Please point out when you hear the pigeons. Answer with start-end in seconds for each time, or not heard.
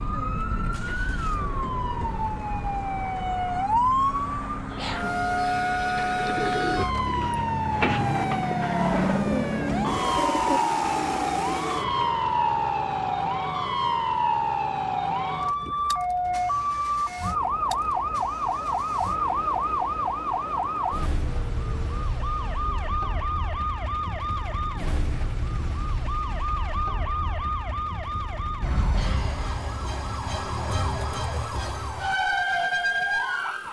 4.7-11.8.